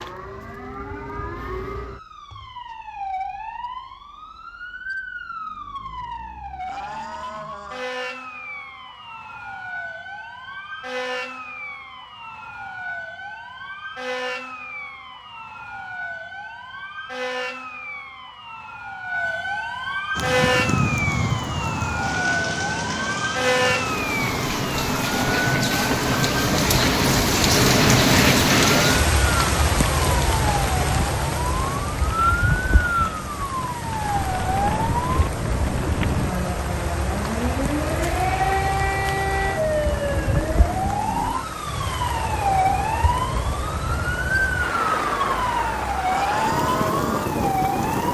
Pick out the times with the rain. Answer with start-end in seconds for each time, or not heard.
20.1-48.0.